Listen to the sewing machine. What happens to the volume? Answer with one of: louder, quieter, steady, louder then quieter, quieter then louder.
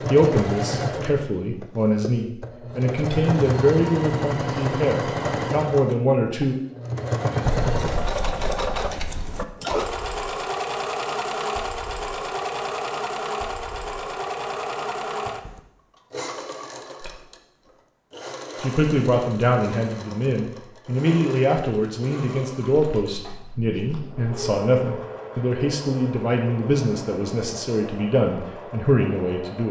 quieter.